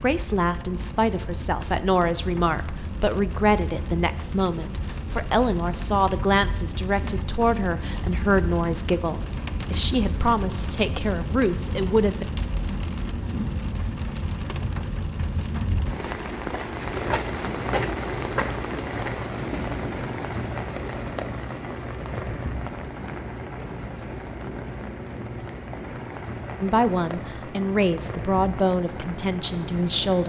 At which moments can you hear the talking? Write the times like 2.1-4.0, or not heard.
0.0-12.2, 26.6-30.2.